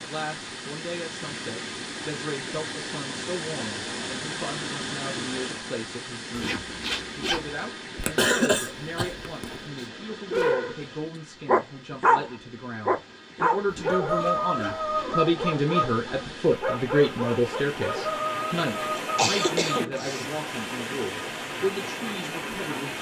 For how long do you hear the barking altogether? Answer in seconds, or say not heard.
9 s.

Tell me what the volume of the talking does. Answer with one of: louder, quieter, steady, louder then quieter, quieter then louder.
louder then quieter.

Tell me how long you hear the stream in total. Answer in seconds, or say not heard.
23 s.